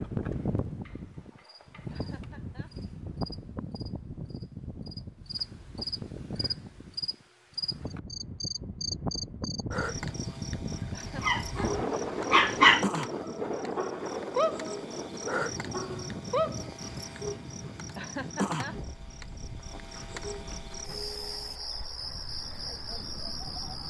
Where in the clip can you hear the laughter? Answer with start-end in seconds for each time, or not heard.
1.9-2.8, 10.9-11.8, 17.9-18.8.